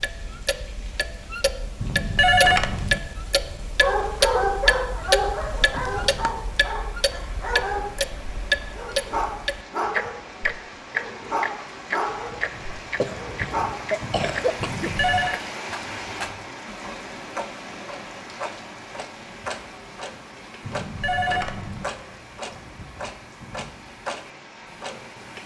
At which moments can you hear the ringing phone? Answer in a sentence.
You can hear the ringing phone from 1.8 to 3.0 s, from 14.6 to 15.4 s and from 20.6 to 21.9 s.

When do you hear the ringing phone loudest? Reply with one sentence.
The volume of the ringing phone peaks at 2 seconds.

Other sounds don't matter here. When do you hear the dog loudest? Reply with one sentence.
The volume of the dog peaks at 4 seconds.